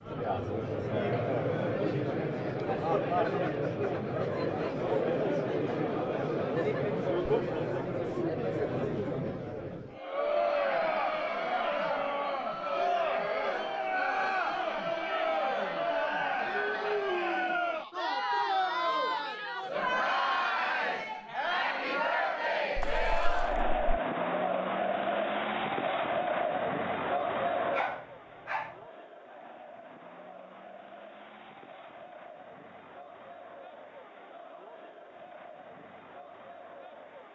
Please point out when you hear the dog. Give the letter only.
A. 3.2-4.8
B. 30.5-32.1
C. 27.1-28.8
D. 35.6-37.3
C.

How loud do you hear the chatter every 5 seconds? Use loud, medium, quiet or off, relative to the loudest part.
loud, loud, loud, loud, loud, loud, quiet, quiet.